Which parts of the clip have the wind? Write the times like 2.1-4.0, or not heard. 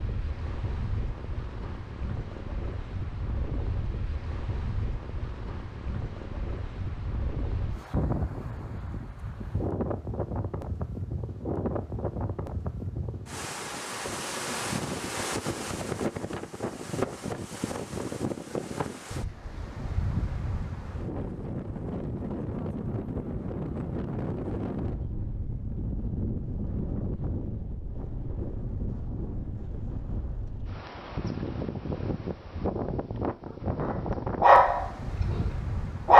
0.0-36.1.